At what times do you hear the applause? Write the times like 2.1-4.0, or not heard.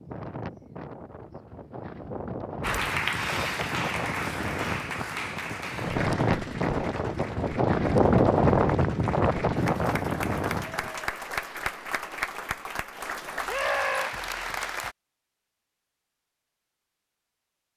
2.6-14.9.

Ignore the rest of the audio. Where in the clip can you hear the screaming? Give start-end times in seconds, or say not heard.
13.4-14.1.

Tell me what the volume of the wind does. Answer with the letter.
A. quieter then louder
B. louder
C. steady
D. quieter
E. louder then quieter
B.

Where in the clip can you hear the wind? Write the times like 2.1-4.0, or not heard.
0.0-10.9.